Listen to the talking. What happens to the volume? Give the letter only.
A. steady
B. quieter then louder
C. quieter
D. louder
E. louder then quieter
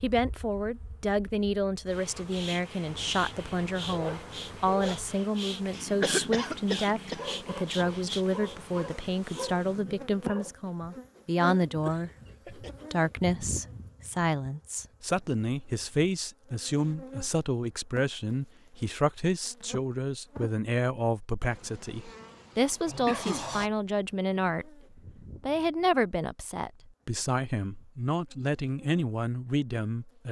A.